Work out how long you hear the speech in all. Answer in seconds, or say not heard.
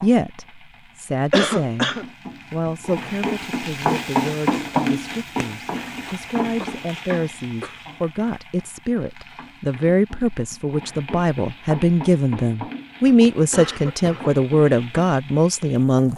16 s.